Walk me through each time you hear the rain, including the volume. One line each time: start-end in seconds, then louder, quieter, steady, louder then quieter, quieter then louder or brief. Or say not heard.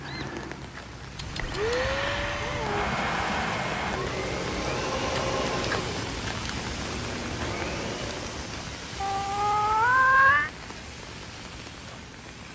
0.0-12.5 louder then quieter.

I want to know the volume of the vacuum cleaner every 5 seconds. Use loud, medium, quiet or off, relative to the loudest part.
loud, loud, off.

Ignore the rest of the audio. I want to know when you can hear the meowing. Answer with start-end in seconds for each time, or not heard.
1.1-2.9, 9.0-10.5.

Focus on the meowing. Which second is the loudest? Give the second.
10 s.